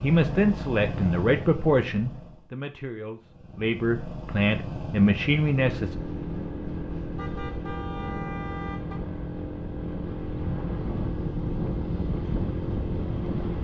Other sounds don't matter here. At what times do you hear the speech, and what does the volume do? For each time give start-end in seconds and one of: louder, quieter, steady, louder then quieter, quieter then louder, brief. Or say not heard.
0.0-6.0 quieter then louder.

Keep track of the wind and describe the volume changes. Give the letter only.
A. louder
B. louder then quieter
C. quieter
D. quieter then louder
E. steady
A.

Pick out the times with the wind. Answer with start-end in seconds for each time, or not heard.
5.8-13.6.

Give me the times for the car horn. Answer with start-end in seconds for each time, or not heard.
7.2-9.0.